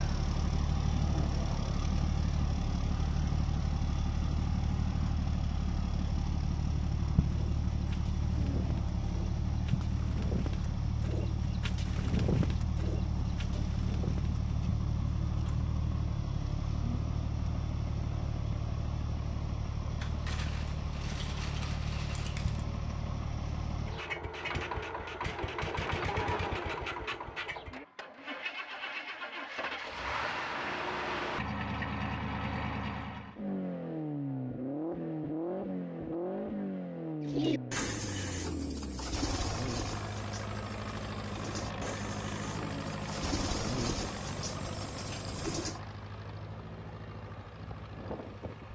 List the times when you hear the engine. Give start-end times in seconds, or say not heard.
0.0-48.7.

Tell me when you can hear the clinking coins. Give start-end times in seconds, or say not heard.
20.0-22.6.